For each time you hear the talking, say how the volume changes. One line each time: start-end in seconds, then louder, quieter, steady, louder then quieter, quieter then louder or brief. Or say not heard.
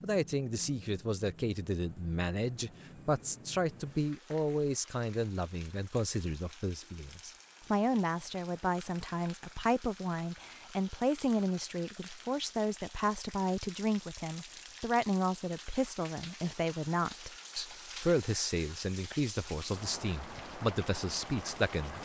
0.0-22.0 steady.